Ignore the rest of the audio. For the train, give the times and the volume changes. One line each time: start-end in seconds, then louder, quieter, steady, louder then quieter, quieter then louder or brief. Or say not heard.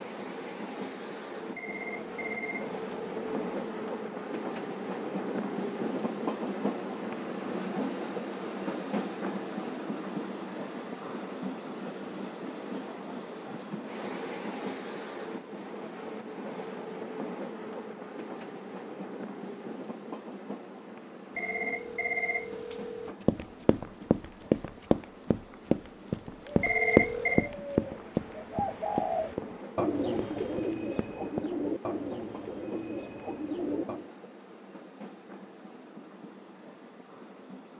0.0-37.7 quieter.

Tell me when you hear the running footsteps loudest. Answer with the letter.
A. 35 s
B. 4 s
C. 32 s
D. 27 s
D.